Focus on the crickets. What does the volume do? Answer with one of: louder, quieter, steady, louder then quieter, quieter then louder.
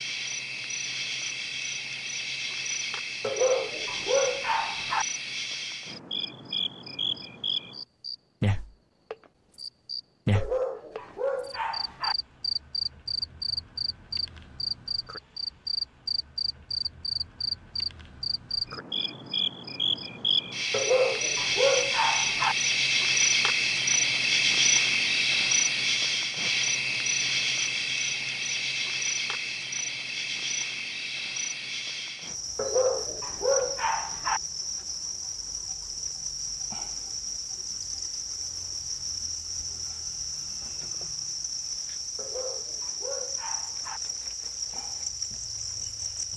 louder then quieter.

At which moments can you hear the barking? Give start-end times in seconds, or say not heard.
3.2-5.0, 10.3-12.2, 20.7-22.6, 32.5-34.4, 42.1-44.0.